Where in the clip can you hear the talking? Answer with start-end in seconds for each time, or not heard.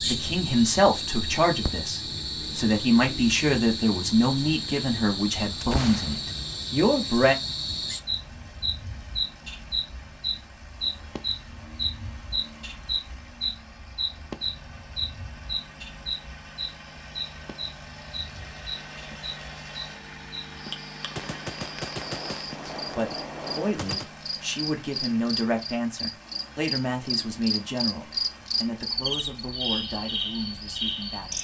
0.0-7.3, 22.6-31.3.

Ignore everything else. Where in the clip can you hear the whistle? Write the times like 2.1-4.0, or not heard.
not heard.